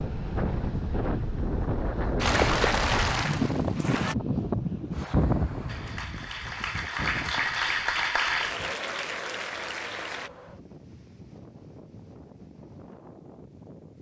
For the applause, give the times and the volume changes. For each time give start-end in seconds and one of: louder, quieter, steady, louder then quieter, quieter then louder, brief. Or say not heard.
2.1-4.2 brief
5.7-10.3 louder then quieter.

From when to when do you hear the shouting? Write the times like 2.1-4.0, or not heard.
not heard.